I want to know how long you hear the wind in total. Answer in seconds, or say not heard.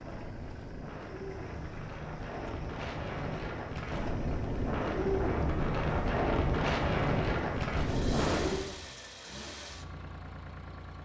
9 s.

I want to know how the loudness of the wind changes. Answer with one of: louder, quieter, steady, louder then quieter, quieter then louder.
louder.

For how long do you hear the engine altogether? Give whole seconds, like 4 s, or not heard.
11 s.